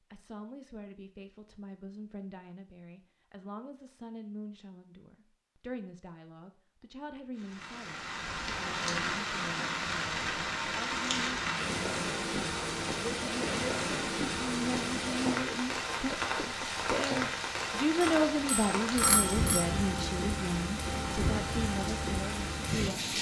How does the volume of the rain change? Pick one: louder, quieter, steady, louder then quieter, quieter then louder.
steady.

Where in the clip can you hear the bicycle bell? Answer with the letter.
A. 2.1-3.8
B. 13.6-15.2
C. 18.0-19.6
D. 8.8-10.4
C.